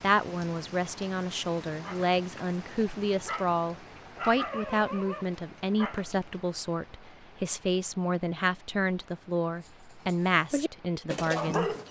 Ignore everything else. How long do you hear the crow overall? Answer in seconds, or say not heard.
not heard.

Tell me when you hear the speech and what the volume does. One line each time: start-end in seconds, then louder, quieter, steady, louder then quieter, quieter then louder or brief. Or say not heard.
0.0-11.8 steady.